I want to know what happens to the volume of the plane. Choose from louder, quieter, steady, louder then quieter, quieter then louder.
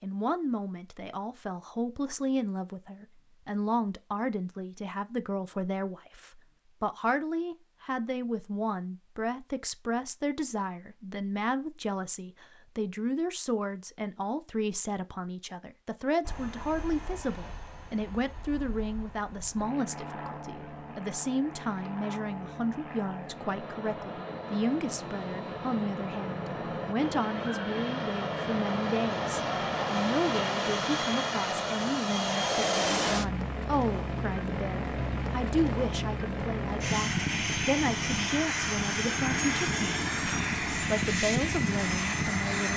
louder.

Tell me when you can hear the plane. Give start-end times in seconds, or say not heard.
16.2-42.7.